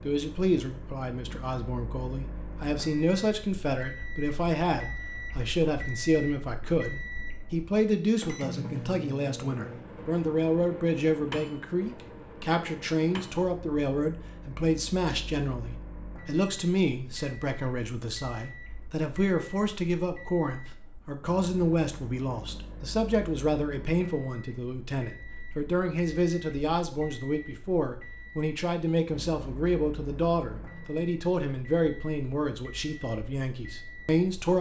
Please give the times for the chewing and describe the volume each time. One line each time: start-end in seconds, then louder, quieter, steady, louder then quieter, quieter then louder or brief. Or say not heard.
not heard.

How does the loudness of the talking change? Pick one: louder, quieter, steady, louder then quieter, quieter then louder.
steady.